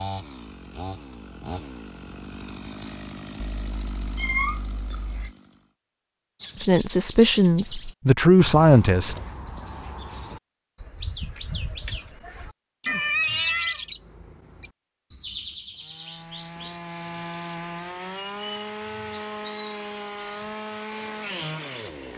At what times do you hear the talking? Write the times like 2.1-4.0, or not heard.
6.6-9.2.